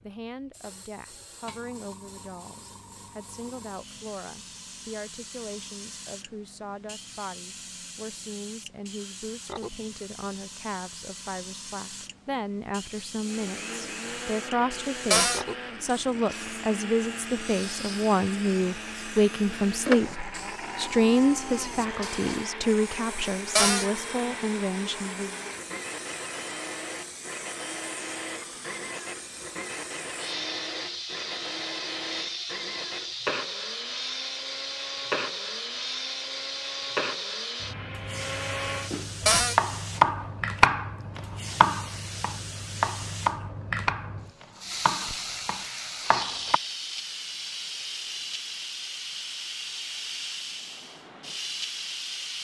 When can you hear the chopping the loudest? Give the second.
40 s.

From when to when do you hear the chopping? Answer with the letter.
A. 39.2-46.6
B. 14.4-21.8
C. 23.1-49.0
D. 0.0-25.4
A.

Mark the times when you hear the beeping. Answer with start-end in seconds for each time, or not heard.
not heard.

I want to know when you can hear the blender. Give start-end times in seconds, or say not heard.
13.2-39.1.